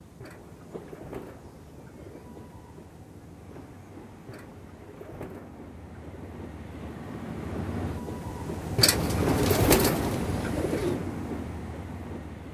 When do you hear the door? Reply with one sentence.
The door can't be heard in this clip.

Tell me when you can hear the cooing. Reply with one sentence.
The cooing can be heard from 0.2 to 2.2 s, from 4.2 to 6.5 s and from 8.8 to 10.9 s.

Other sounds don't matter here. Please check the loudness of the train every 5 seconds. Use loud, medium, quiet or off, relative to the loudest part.
quiet, loud, loud.